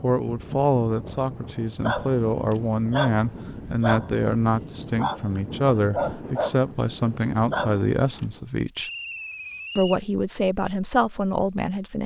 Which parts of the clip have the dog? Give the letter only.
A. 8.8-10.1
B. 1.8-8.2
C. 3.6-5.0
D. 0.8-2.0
B.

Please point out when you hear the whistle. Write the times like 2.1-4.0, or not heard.
8.8-10.1.